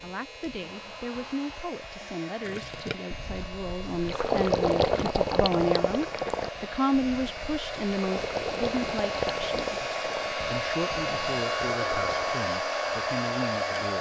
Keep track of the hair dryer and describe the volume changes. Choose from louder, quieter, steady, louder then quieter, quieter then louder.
louder.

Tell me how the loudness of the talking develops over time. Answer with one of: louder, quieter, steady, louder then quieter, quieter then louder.
louder then quieter.